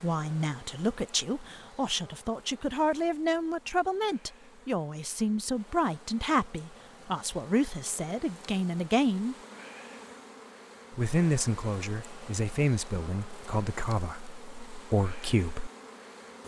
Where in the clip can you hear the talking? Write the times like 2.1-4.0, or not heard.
0.0-9.3, 10.9-15.7.